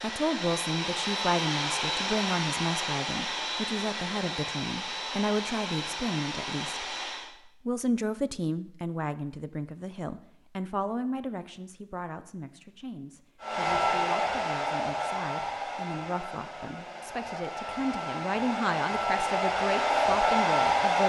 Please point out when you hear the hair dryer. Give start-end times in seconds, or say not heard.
0.0-7.3, 13.4-21.0.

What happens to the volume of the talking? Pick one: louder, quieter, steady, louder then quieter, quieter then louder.
quieter then louder.